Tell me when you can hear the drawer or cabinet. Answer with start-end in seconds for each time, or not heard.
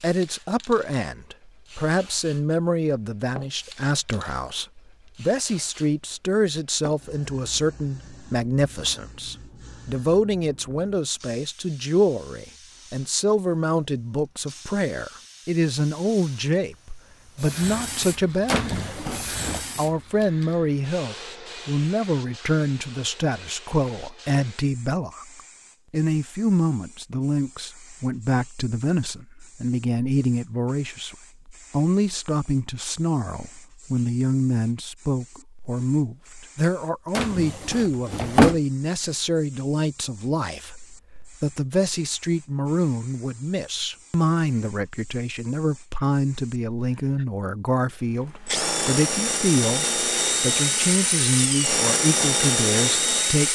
18.4-19.6, 37.1-38.5.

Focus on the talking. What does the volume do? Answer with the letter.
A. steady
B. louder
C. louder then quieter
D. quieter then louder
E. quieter
A.